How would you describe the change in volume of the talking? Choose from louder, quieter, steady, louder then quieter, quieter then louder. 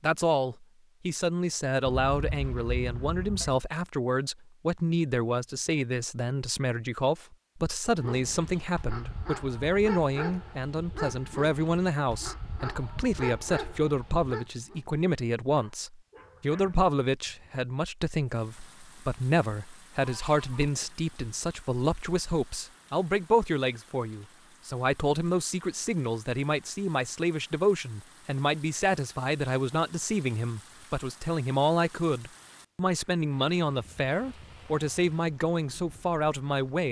steady.